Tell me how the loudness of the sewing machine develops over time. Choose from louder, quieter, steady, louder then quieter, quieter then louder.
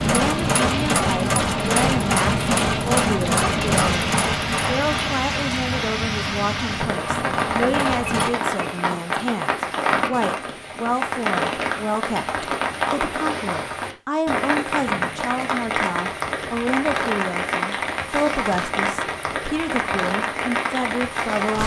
quieter.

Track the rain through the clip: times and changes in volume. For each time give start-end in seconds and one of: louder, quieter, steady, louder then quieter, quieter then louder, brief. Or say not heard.
0.0-21.6 steady.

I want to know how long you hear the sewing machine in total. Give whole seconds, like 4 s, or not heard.
8 s.